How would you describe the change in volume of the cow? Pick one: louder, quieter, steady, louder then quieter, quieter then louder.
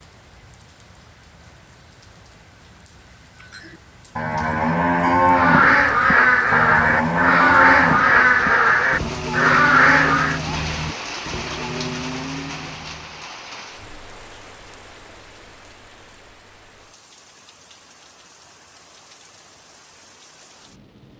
quieter.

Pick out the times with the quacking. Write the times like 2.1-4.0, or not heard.
5.3-10.4.